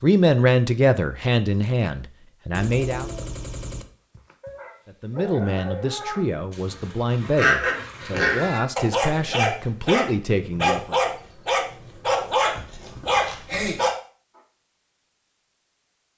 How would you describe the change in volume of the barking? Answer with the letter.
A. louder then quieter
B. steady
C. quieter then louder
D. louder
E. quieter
D.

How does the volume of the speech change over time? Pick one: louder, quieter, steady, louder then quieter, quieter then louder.
quieter.